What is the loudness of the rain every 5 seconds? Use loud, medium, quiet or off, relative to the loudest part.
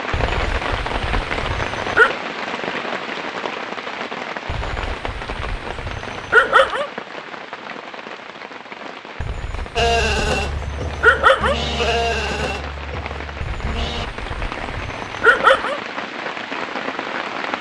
loud, medium, medium, loud.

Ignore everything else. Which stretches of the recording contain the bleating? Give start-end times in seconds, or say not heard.
9.8-14.1.